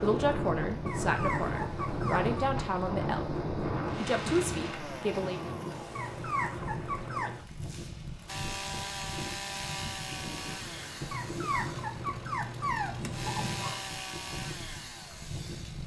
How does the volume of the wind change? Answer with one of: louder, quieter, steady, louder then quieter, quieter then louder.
quieter.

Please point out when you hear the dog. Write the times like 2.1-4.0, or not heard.
0.8-2.5, 6.0-7.5, 11.1-13.8.